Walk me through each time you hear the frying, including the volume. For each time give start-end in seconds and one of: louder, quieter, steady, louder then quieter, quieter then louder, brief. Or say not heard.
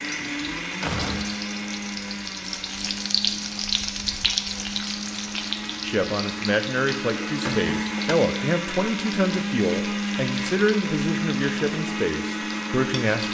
0.0-13.2 louder then quieter.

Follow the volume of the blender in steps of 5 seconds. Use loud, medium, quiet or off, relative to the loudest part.
medium, loud, loud.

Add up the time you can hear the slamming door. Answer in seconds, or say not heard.
2 s.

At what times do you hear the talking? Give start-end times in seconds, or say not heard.
5.8-13.2.